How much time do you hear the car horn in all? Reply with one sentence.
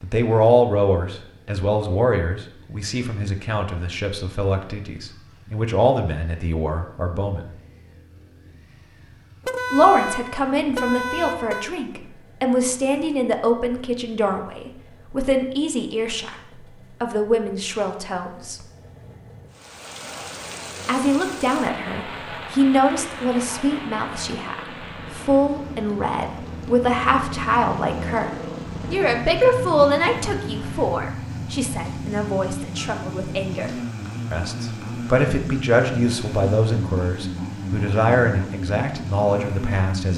The car horn can be heard for 2 seconds in total.